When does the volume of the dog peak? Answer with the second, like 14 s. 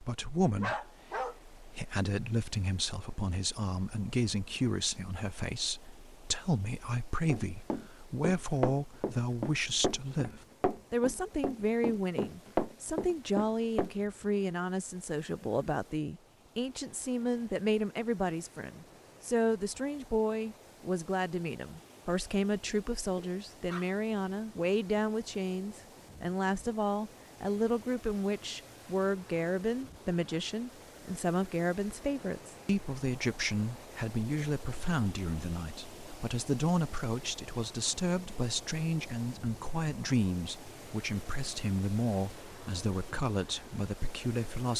1 s.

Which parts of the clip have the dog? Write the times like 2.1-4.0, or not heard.
0.6-1.4, 23.1-23.9.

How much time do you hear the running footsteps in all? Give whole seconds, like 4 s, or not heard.
7 s.